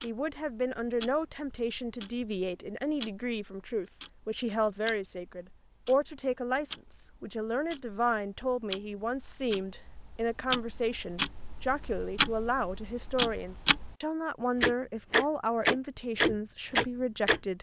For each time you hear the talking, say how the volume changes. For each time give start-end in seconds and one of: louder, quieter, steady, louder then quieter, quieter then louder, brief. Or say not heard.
0.0-17.5 steady.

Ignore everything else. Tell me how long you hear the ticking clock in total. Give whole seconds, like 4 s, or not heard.
17 s.